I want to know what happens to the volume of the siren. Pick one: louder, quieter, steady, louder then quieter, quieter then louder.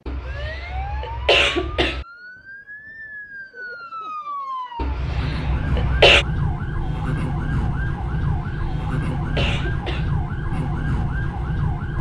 louder.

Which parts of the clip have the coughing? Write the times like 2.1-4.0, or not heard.
0.1-2.0, 4.8-6.2, 8.3-10.2.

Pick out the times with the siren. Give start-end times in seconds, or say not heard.
0.2-11.9.